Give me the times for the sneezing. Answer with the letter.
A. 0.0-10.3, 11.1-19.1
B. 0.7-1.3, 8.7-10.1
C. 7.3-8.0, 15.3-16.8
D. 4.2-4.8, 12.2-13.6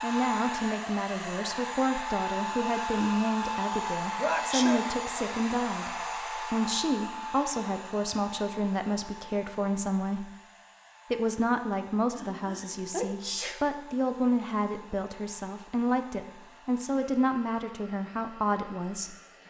D.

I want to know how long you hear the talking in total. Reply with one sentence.
You can hear the talking for 18 seconds altogether.